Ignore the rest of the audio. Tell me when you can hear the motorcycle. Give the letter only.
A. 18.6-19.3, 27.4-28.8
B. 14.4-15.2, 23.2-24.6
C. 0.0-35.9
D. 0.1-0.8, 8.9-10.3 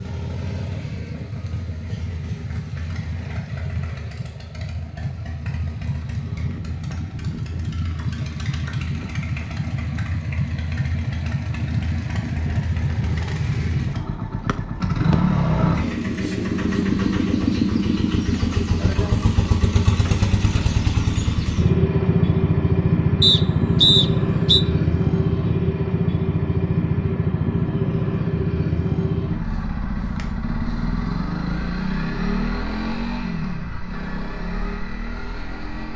C.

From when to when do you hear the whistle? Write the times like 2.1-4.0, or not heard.
14.4-15.2, 23.2-24.6.